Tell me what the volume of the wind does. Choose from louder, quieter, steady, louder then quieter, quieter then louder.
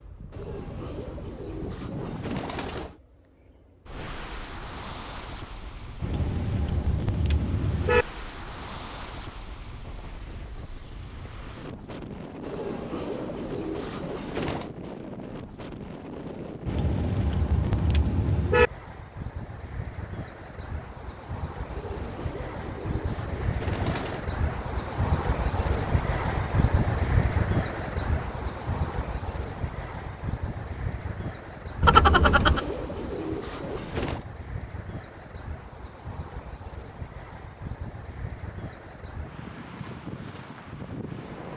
louder then quieter.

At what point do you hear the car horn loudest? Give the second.
32 s.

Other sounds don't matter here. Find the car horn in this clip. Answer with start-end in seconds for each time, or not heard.
6.0-8.1, 16.6-18.7, 31.8-32.6.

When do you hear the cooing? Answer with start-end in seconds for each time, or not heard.
0.3-3.0, 12.4-14.7, 21.6-24.3, 32.0-34.2.